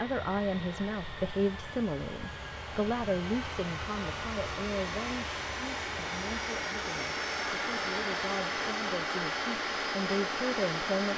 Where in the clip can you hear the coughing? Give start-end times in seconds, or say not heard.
not heard.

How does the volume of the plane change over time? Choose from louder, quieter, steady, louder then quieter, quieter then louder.
louder.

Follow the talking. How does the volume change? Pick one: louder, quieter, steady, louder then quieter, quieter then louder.
quieter then louder.